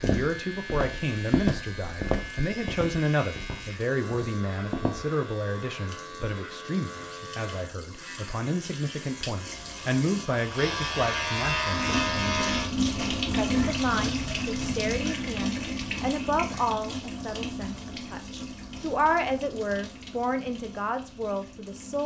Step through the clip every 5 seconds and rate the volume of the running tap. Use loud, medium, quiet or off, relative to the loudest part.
quiet, quiet, loud, medium, quiet.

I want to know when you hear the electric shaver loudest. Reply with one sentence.
The volume of the electric shaver peaks at 12 seconds.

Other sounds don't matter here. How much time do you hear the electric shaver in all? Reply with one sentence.
The electric shaver can be heard for 13 seconds in total.